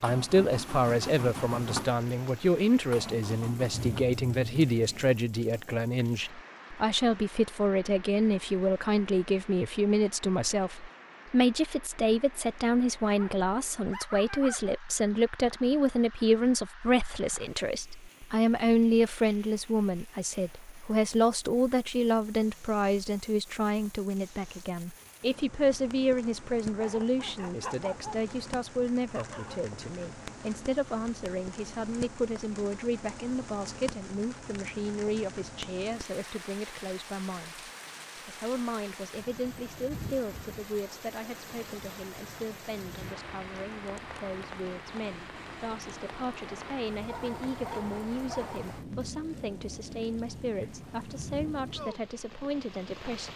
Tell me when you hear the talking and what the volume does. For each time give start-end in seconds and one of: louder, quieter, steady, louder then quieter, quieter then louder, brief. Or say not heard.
0.0-53.3 quieter.